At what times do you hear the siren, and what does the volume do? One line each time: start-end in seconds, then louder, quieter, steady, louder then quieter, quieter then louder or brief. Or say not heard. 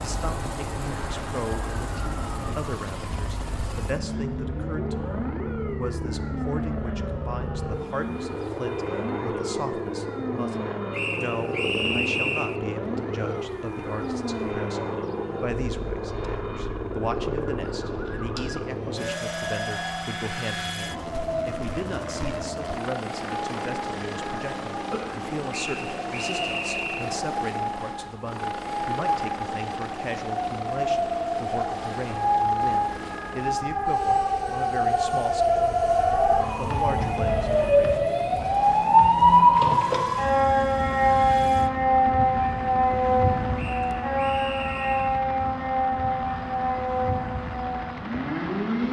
0.0-48.8 louder.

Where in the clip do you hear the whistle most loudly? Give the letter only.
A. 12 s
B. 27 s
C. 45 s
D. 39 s
A.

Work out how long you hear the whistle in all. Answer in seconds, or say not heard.
5 s.